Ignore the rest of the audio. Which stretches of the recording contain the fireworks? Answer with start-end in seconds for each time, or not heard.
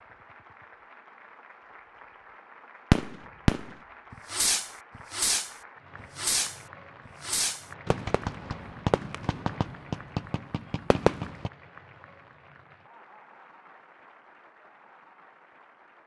2.9-11.5.